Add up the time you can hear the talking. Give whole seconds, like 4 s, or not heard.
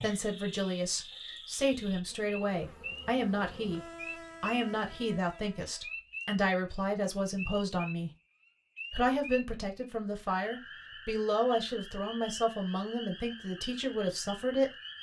13 s.